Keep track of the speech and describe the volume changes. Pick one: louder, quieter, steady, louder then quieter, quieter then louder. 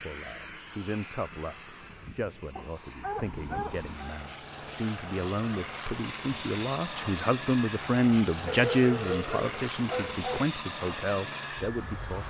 louder then quieter.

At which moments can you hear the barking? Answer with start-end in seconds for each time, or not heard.
2.5-4.2, 8.4-10.4.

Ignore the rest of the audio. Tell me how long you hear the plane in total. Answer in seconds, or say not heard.
12 s.